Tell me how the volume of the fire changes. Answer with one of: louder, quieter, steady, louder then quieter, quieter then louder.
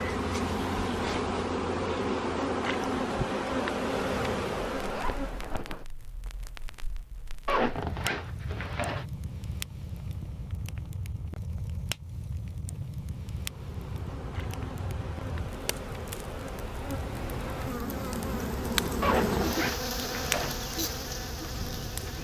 louder.